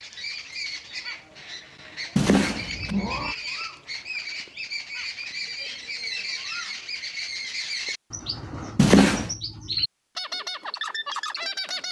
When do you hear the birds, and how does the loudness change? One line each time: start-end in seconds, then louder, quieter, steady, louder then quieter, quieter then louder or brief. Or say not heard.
0.0-11.8 louder.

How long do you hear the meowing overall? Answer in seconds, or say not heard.
2 s.